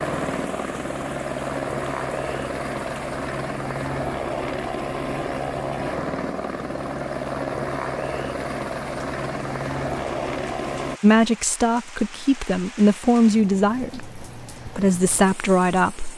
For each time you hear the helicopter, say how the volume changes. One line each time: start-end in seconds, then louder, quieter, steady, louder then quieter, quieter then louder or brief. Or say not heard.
0.0-11.0 steady.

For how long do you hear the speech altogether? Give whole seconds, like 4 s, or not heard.
5 s.